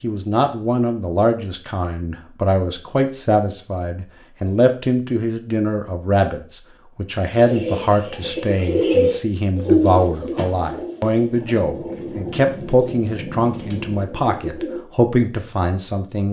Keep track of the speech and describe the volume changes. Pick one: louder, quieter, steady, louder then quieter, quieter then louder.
steady.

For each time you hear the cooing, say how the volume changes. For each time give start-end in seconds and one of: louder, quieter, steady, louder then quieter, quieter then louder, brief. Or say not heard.
7.3-14.8 quieter.